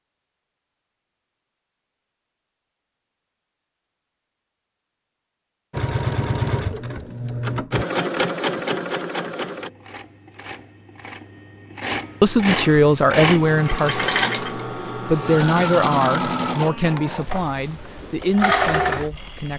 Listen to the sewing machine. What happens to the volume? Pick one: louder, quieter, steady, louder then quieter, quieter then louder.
quieter then louder.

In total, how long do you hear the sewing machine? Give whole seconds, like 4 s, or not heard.
14 s.